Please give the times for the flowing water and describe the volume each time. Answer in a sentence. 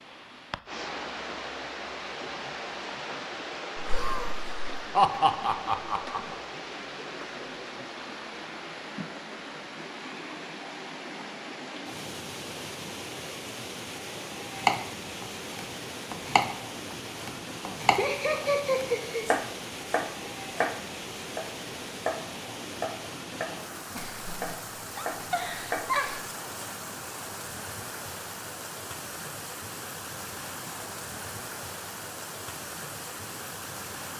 You can hear the flowing water from 0.0 to 34.1 s, at a steady volume.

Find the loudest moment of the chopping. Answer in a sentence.
The volume of the chopping peaks at 15 seconds.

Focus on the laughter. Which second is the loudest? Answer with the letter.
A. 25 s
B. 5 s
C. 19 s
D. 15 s
B.